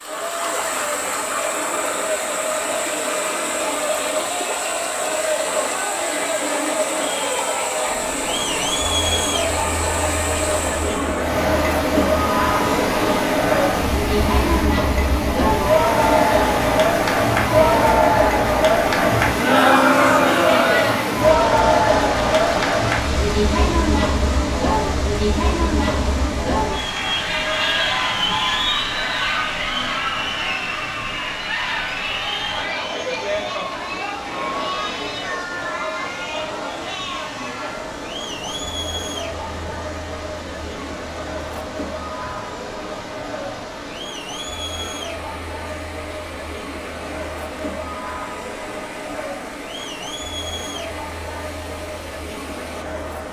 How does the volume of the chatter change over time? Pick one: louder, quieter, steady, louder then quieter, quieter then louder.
louder then quieter.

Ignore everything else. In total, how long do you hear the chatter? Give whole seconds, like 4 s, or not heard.
53 s.